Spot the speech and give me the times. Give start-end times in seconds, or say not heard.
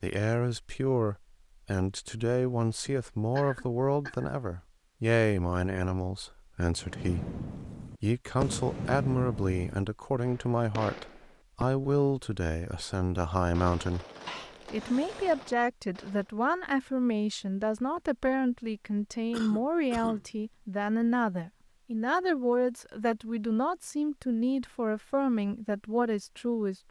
0.0-14.1, 14.7-26.8.